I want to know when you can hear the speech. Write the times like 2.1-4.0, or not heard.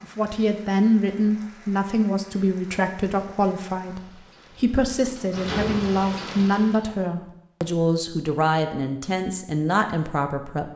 0.0-10.7.